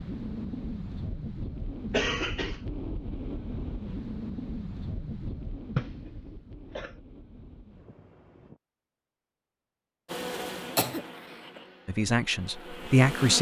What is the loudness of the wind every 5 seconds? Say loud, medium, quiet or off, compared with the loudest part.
loud, medium, off.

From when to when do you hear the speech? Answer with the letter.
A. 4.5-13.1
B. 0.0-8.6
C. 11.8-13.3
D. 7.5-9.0
C.